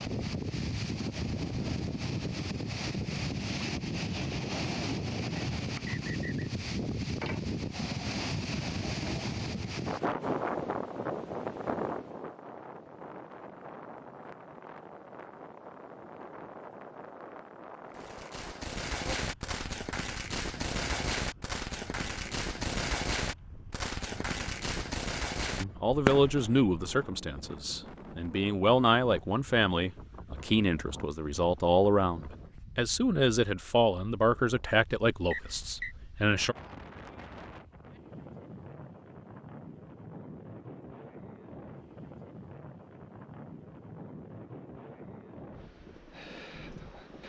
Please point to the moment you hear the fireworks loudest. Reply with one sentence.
The volume of the fireworks peaks at 26 seconds.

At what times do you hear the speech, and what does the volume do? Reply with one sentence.
You can hear the speech from 25.6 to 36.5 s, at a steady volume.